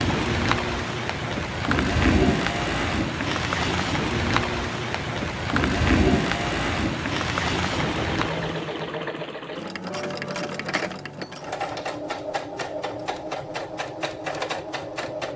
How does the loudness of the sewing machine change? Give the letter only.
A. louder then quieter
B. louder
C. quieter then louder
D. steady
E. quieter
D.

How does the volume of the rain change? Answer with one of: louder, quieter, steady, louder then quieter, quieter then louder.
steady.